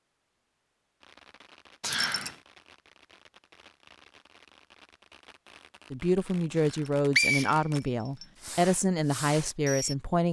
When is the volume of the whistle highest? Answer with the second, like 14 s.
7 s.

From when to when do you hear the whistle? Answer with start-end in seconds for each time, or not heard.
1.8-2.4, 6.5-8.2.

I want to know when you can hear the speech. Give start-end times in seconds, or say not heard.
5.9-10.2.